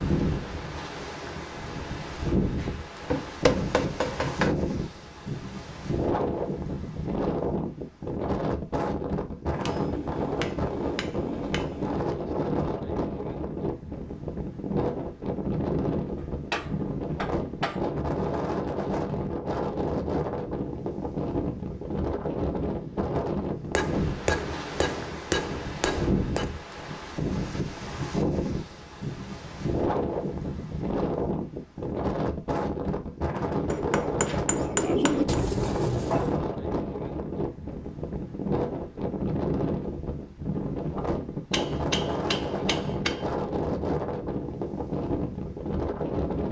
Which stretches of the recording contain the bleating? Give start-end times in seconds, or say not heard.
not heard.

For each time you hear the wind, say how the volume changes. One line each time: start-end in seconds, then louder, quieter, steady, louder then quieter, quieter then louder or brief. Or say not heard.
0.0-46.4 steady.